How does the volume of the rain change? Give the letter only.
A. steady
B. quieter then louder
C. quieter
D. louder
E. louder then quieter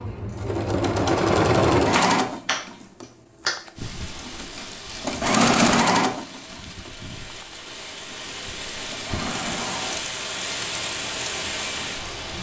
D.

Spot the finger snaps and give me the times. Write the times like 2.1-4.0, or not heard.
1.9-3.5.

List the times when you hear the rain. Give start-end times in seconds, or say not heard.
3.8-12.3.